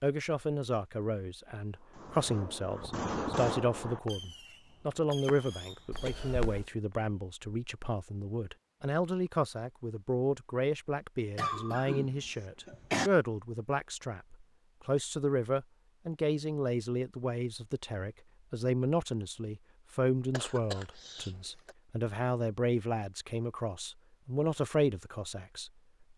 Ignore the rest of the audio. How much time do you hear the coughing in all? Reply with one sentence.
The coughing can be heard for 4 seconds in total.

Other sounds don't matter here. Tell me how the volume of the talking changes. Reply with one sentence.
The volume of the talking stays about the same.